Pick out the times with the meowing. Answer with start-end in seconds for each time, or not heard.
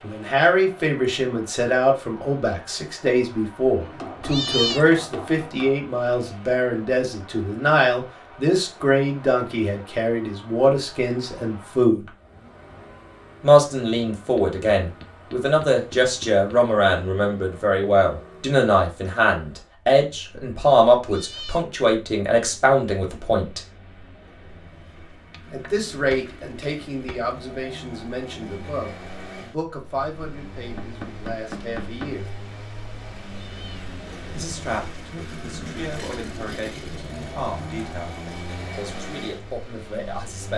4.2-4.8, 21.0-21.6, 33.4-33.9.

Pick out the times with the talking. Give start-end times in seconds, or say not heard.
0.0-12.1, 13.4-23.6, 25.5-32.3, 34.4-38.1, 38.8-40.5.